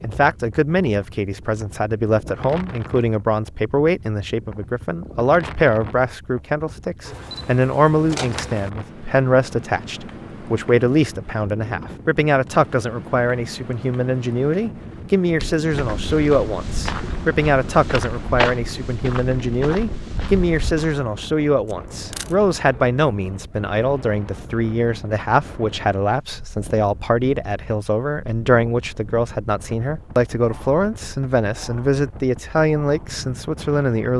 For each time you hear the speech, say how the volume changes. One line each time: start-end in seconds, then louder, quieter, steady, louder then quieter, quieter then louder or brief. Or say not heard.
0.0-34.1 steady.